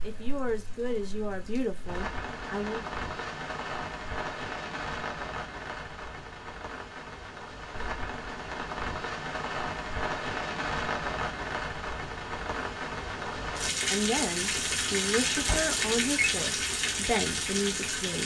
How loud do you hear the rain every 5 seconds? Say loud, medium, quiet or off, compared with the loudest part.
medium, medium, loud, loud.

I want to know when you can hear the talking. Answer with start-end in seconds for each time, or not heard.
0.0-2.9, 13.8-18.2.